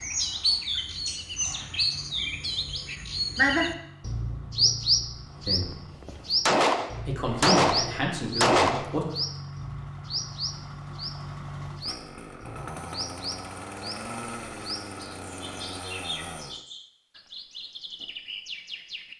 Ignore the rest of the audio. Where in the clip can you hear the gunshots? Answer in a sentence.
The gunshots can be heard from 6.5 to 8.9 s.